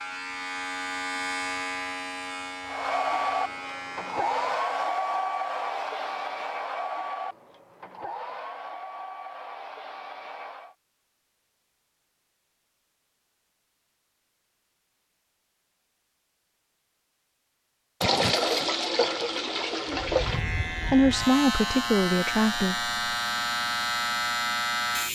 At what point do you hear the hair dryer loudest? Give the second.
5 s.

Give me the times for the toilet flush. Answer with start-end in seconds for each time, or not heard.
18.0-20.4.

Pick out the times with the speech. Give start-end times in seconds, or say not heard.
20.9-22.9.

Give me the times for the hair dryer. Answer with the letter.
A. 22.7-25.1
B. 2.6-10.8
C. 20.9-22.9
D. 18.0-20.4
B.